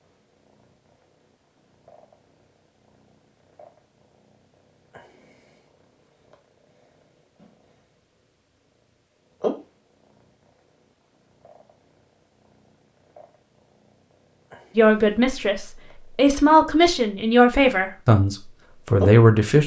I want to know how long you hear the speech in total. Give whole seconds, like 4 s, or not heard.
5 s.